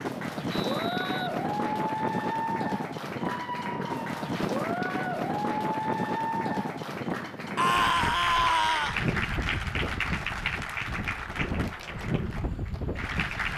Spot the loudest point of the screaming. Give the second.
8 s.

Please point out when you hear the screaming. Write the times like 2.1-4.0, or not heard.
3.1-4.2, 7.5-9.0.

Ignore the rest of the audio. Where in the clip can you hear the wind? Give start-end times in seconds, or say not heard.
0.0-13.5.